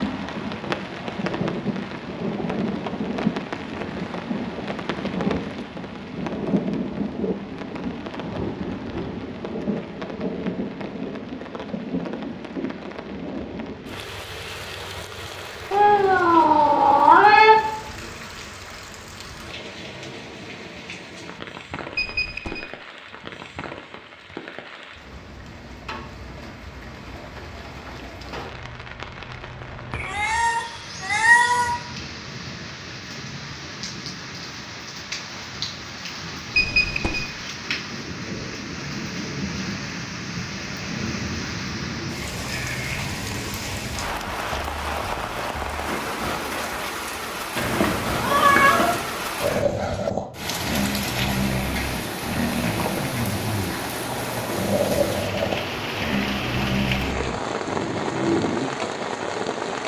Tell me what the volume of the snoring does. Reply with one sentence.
The loudness of the snoring stays about the same.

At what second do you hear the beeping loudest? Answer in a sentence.
The loudest moment of the beeping is at 37 seconds.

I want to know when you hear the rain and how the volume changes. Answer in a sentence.
You can hear the rain from 0.0 to 59.8 s, getting quieter then louder.